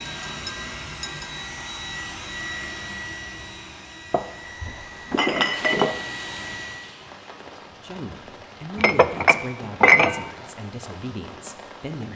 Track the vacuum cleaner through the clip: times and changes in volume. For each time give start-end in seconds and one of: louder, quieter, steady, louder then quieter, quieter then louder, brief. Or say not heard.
0.0-6.9 quieter then louder.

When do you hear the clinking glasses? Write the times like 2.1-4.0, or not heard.
0.2-1.3, 4.1-6.0, 8.8-10.3.